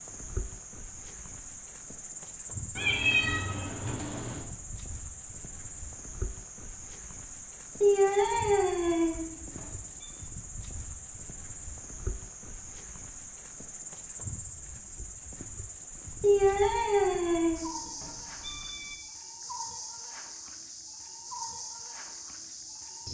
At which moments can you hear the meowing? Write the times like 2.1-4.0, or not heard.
2.8-4.4, 7.8-9.7, 16.2-18.9.